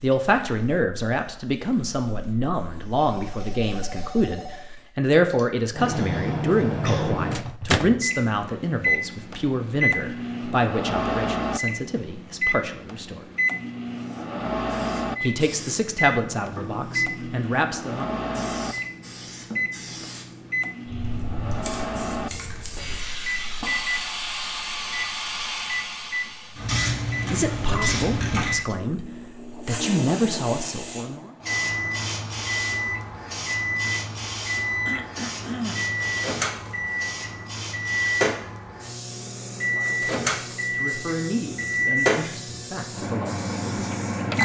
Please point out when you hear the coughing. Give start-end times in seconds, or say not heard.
5.3-7.2, 34.9-35.9.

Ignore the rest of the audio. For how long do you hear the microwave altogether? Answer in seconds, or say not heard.
39 s.